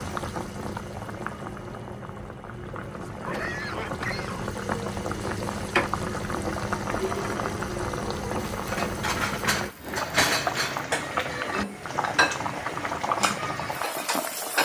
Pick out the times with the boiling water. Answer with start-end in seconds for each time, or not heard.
0.0-14.6.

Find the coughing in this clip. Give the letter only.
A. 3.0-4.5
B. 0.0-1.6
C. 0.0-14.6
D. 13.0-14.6
A.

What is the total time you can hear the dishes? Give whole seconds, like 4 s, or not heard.
6 s.